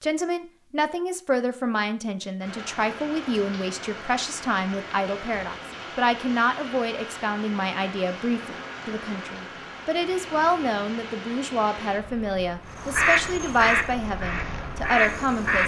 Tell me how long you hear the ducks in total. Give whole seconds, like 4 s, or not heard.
3 s.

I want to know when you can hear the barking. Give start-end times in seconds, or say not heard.
not heard.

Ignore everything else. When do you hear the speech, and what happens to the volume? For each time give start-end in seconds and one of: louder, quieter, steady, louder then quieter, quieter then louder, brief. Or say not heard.
0.0-15.6 steady.